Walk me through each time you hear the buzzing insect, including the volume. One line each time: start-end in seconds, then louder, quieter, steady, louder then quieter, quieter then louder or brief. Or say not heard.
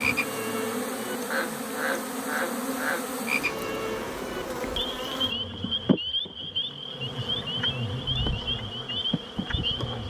0.0-10.0 steady.